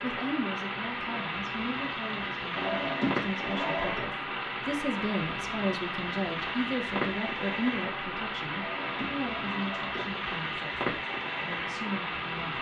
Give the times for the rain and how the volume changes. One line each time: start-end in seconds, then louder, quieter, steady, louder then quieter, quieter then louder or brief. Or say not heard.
0.0-12.5 steady.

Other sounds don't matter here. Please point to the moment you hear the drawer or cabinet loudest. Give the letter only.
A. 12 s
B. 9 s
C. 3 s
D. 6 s
C.